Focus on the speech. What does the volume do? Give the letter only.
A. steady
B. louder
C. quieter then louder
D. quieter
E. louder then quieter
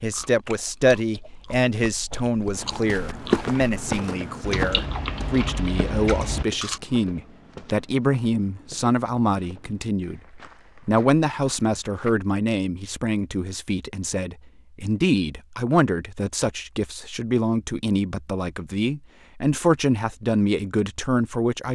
A.